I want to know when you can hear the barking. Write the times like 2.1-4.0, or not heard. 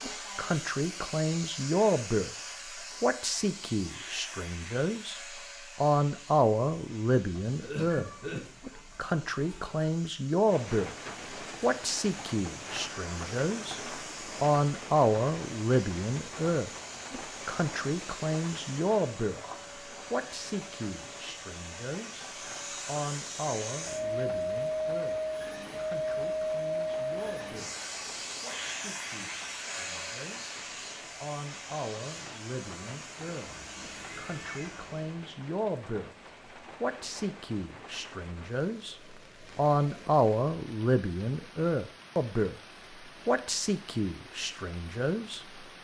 not heard.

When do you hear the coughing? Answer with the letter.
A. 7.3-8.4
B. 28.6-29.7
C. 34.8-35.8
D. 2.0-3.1
A.